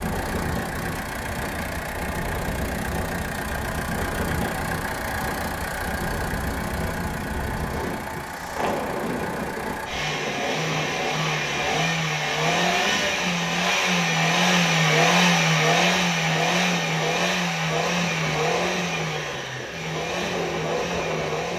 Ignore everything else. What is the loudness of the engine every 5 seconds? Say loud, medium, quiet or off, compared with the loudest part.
medium, medium, loud, loud, medium.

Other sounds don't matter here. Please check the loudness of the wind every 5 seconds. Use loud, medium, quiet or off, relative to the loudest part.
loud, loud, medium, medium, loud.